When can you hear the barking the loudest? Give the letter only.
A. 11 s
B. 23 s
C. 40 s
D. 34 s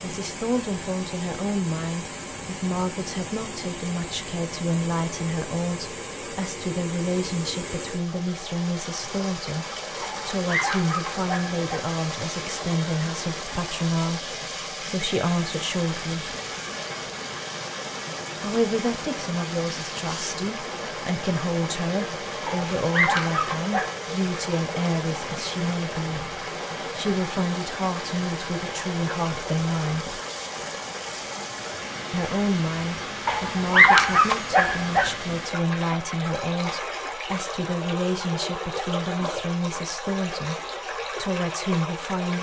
D.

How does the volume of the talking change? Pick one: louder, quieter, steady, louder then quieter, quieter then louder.
steady.